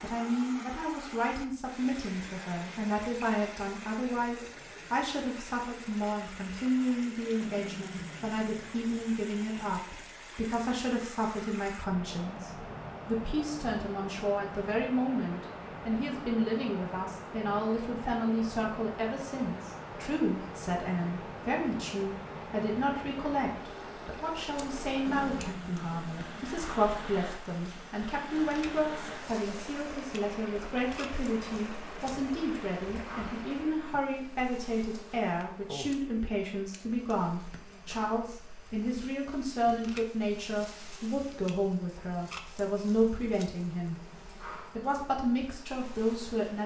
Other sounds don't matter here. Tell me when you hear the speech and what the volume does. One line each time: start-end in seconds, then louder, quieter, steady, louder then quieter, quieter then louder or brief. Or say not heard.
0.0-44.0 steady
44.8-46.6 brief.